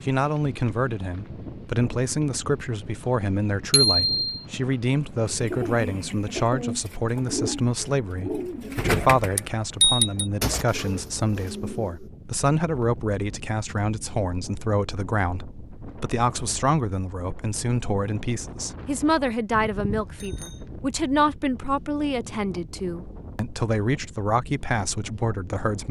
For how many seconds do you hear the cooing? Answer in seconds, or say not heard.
7 s.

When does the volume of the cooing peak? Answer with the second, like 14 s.
9 s.